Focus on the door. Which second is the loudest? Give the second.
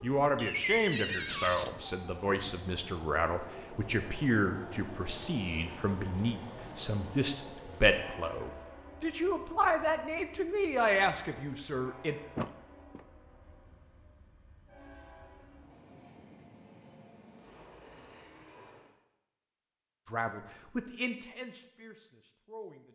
1 s.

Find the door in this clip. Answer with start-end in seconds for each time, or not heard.
0.3-1.8, 12.3-13.1.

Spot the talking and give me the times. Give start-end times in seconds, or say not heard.
0.0-12.2, 20.1-22.9.